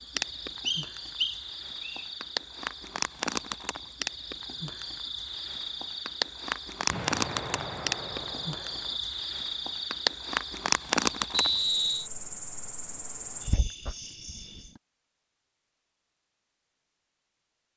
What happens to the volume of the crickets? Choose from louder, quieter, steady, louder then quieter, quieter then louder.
louder then quieter.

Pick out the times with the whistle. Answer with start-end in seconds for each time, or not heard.
0.7-2.0, 11.3-12.1.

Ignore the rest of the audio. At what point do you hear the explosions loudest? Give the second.
7 s.